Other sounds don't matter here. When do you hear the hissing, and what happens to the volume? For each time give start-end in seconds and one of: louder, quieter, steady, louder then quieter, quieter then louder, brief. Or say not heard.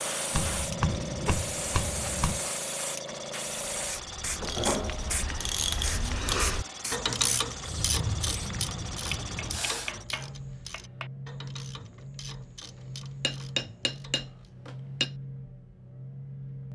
0.0-9.9 steady.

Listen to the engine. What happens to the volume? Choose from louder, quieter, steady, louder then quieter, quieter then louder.
steady.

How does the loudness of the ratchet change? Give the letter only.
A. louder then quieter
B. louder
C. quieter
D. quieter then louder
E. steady
C.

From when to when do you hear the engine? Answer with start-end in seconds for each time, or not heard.
0.0-16.7.